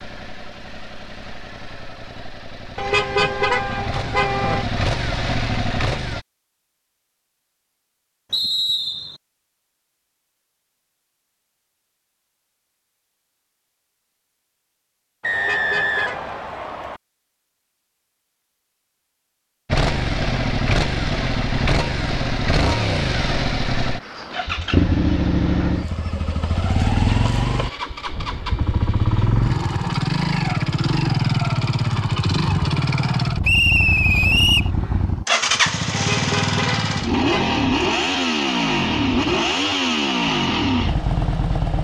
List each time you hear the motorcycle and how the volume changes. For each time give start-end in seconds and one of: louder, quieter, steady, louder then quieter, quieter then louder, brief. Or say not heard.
0.0-6.2 louder
19.6-41.7 steady.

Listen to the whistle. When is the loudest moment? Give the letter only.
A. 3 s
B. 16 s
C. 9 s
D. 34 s
D.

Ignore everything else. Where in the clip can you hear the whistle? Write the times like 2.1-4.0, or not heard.
8.3-9.2, 15.2-17.0, 33.4-34.7.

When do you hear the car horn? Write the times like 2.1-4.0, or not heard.
2.8-4.7, 15.3-16.4, 35.9-37.8.